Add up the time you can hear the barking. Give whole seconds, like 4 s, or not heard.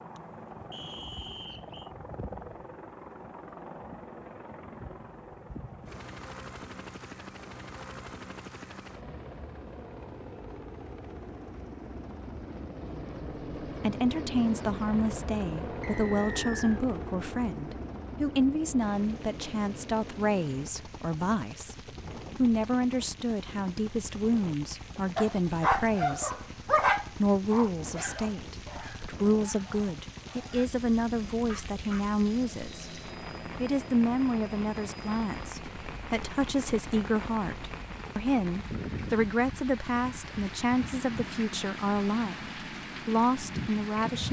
7 s.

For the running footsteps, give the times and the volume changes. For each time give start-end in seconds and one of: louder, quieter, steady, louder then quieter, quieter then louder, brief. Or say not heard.
not heard.